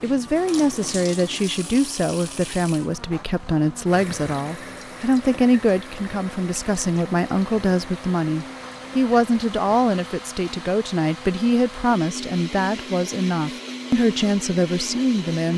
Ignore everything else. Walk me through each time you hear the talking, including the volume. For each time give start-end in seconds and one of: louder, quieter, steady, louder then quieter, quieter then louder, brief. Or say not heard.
0.0-15.5 steady.